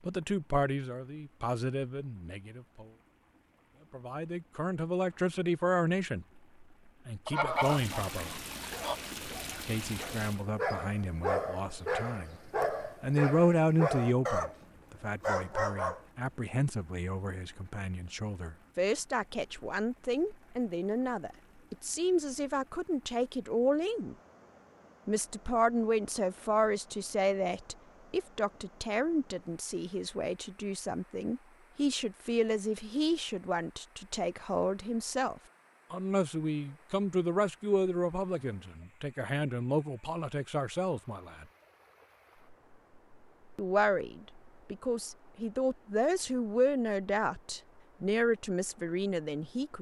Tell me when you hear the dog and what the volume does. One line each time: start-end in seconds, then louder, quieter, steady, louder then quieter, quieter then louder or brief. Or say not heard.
8.6-14.6 louder
15.2-16.0 brief.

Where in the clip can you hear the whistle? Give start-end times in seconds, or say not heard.
not heard.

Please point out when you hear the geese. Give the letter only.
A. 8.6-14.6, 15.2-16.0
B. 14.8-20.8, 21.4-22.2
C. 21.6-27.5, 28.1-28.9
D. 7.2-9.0
D.